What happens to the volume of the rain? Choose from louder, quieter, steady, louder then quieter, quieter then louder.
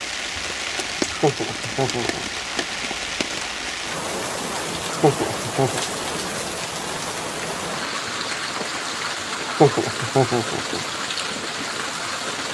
steady.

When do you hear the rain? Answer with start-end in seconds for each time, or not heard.
0.0-12.5.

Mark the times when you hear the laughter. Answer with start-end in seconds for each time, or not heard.
1.1-2.4, 4.9-5.8, 9.4-10.8.